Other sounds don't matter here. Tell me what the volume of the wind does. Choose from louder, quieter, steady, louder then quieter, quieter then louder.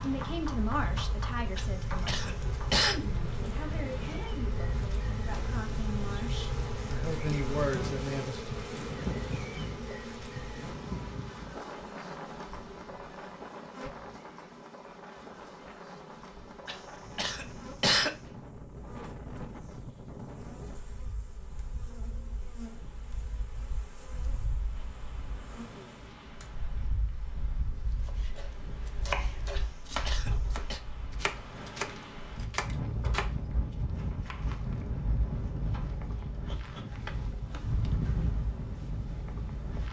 quieter then louder.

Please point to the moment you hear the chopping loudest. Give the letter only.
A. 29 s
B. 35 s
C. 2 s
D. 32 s
A.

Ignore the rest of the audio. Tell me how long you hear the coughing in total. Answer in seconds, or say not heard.
4 s.